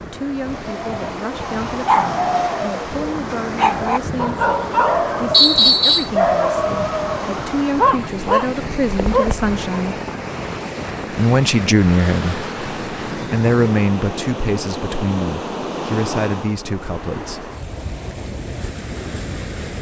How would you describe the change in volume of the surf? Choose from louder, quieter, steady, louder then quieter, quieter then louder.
steady.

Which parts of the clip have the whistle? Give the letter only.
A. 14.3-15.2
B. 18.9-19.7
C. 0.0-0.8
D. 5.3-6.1
D.